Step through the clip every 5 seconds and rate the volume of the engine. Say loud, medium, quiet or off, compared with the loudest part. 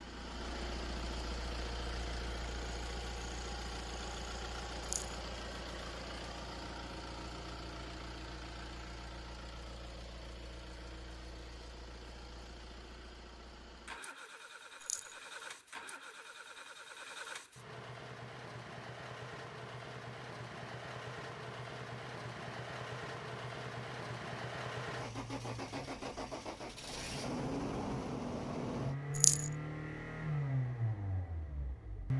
medium, medium, quiet, medium, medium, loud, loud.